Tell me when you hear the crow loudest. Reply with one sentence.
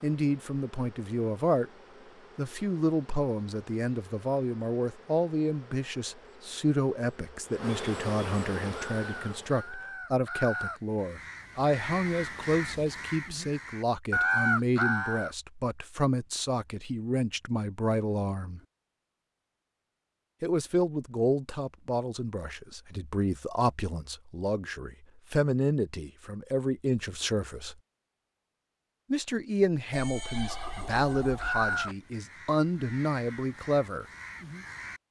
The volume of the crow peaks at 14 seconds.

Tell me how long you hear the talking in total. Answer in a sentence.
You can hear the talking for 30 seconds altogether.